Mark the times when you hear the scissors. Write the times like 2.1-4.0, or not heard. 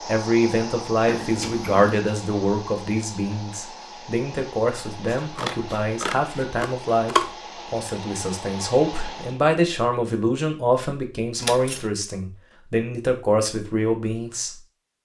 1.1-1.9, 5.0-7.3, 11.4-11.8.